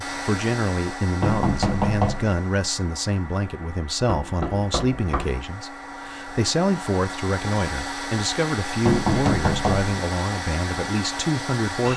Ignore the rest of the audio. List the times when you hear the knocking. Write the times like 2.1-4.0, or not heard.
1.2-2.4, 4.0-5.4, 8.8-9.9.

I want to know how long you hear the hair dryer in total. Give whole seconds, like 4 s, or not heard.
12 s.